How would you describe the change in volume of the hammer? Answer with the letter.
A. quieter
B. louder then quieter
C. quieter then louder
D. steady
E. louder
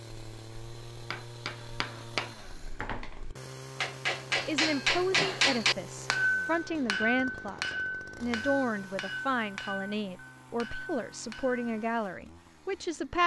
B.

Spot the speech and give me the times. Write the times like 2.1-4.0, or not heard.
4.5-13.2.